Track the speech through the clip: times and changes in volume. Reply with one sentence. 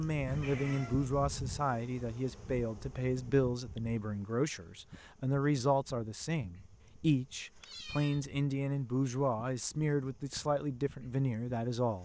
You can hear the speech from 0.0 to 12.0 s, at a steady volume.